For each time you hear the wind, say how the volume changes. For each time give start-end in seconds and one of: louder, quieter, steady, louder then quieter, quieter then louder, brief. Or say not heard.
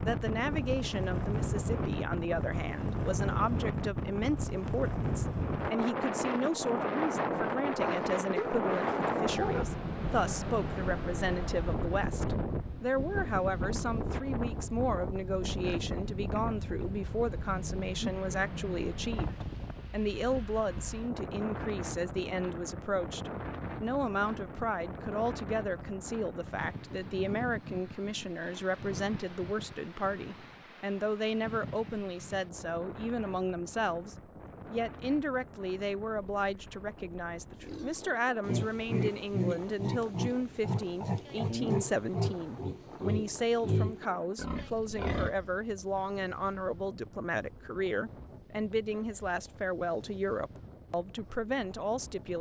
0.0-52.3 quieter.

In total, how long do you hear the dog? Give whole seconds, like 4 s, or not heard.
2 s.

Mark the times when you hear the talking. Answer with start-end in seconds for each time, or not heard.
0.0-52.3.